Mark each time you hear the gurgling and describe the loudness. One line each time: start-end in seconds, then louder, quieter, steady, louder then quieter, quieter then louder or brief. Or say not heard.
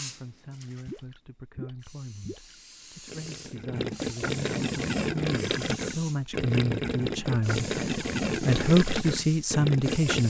0.8-10.2 louder.